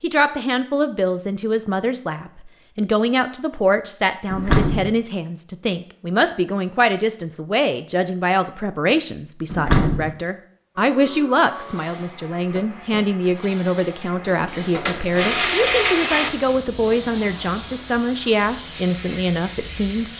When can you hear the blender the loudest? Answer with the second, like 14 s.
16 s.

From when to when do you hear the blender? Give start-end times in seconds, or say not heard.
10.8-16.3.